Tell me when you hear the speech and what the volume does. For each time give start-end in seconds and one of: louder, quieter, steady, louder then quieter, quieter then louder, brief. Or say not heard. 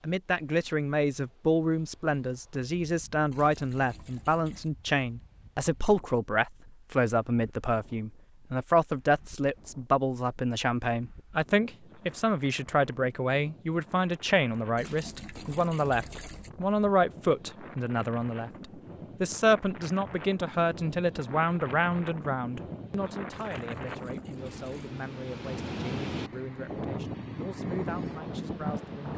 0.0-29.1 quieter.